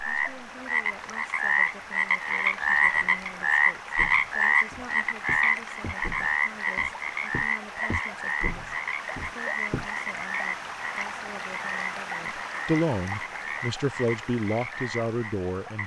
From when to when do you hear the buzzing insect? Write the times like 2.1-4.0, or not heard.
not heard.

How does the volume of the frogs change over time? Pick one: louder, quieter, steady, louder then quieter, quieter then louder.
quieter.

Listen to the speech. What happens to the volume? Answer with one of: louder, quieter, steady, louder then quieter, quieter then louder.
louder.